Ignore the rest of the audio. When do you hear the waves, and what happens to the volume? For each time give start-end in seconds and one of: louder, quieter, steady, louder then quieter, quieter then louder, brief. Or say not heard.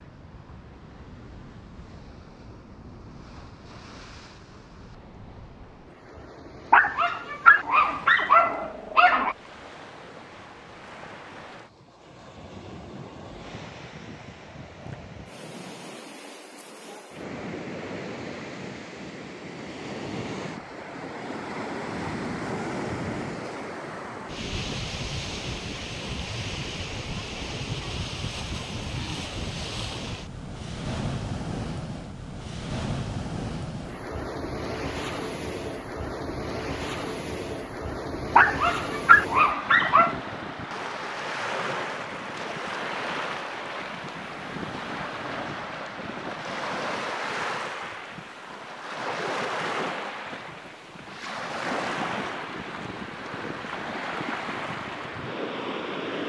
0.0-56.2 louder.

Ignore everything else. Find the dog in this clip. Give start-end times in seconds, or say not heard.
6.7-9.3, 38.4-40.1.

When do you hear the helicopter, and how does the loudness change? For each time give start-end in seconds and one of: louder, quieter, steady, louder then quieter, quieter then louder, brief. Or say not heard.
not heard.